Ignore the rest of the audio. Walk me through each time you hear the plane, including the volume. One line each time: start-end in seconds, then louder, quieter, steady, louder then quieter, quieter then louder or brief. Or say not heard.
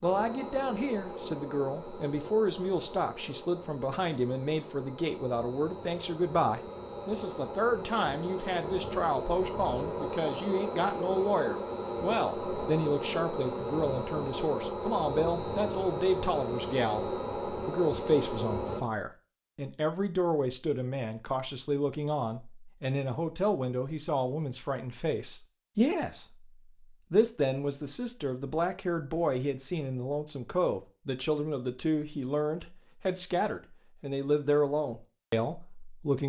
0.0-18.8 louder.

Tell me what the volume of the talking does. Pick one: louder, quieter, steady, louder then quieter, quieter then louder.
steady.